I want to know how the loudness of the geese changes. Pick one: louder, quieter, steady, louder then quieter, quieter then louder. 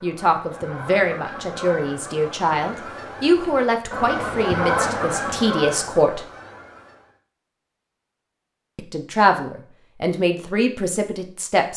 louder then quieter.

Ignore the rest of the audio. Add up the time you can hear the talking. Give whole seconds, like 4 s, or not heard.
9 s.